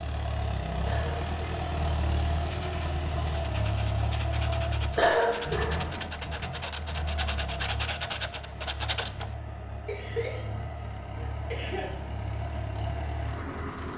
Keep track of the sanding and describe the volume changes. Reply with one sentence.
The volume of the sanding goes up.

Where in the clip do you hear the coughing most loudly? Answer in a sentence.
The volume of the coughing peaks at 5 seconds.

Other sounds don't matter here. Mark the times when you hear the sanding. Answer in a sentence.
The sanding can be heard from 2.4 to 9.3 s.